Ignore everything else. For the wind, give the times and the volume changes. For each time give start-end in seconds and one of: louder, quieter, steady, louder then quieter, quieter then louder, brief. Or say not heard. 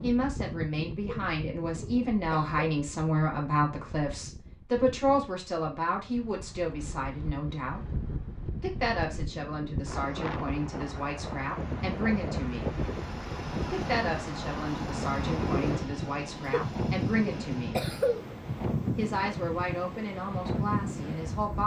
0.0-21.6 louder.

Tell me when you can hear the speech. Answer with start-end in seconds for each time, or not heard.
0.0-7.9, 8.6-12.8, 13.7-17.9, 18.9-21.6.